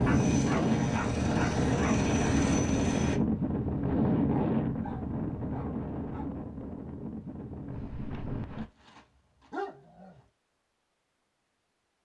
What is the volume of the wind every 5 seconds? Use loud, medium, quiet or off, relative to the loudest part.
loud, medium, off.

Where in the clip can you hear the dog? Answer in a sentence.
You can hear the dog from 0.1 to 1.9 s, from 4.2 to 6.3 s and from 8.8 to 10.2 s.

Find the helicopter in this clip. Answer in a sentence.
You can hear the helicopter from 0.0 to 3.2 s.